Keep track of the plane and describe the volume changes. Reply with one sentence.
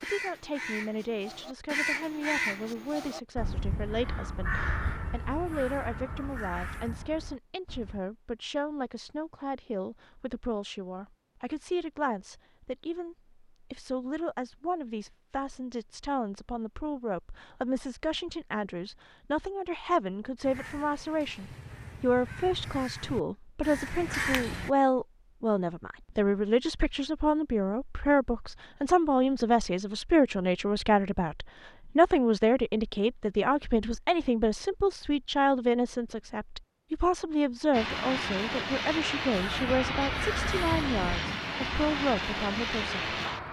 The loudness of the plane stays about the same.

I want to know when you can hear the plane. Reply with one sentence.
You can hear the plane from 37.7 to 43.4 s.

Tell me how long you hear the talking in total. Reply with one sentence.
The talking can be heard for 43 seconds in total.